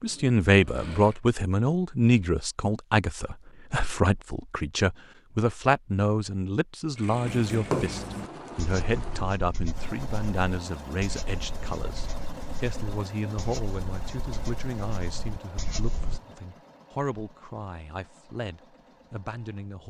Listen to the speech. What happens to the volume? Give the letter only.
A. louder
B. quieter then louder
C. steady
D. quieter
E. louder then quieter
D.